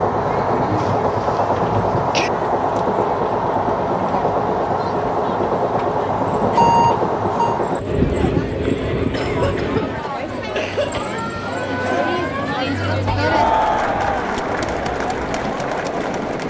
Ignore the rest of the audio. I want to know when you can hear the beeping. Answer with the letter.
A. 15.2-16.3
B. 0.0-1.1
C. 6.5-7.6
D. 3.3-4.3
C.